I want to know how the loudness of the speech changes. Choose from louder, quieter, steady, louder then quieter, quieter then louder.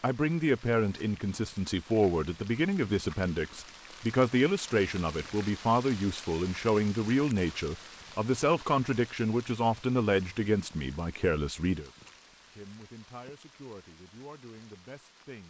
quieter.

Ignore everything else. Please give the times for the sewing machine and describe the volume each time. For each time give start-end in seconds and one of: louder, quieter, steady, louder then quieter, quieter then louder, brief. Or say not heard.
not heard.